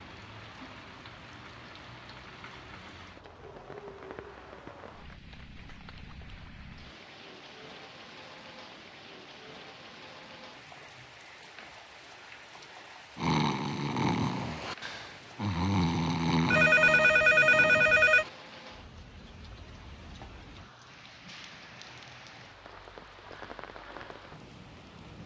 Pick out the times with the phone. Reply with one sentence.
The phone can be heard from 16.5 to 18.2 s.